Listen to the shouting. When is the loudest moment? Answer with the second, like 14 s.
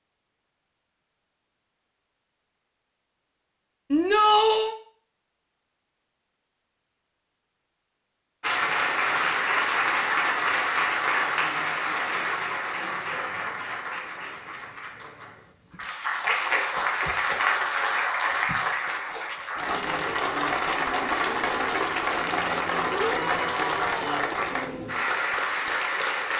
4 s.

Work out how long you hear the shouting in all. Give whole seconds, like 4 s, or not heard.
2 s.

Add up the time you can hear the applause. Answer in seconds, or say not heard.
18 s.